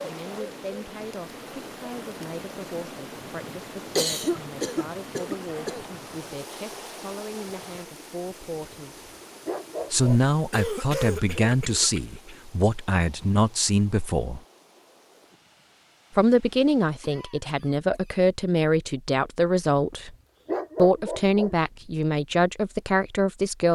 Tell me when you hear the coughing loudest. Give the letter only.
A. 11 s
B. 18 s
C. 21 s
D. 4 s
D.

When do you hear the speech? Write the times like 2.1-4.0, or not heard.
0.0-9.1, 9.9-14.4, 16.1-20.1, 20.8-23.7.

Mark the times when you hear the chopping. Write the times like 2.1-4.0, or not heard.
not heard.